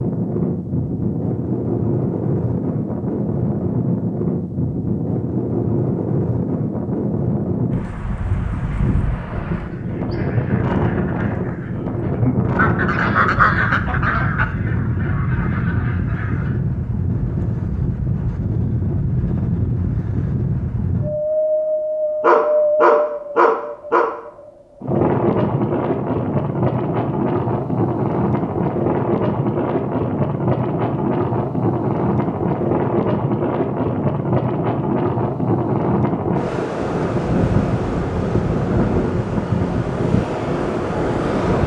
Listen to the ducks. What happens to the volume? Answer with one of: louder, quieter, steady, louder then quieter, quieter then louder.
louder then quieter.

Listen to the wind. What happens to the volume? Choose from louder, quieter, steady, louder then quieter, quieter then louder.
steady.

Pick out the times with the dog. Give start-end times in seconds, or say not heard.
22.2-24.1.